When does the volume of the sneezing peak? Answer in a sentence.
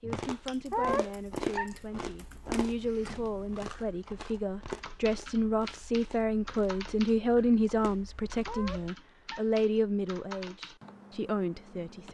The volume of the sneezing peaks at 1 second.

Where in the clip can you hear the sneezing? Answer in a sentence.
The sneezing can be heard from 0.7 to 1.8 s and from 8.4 to 9.5 s.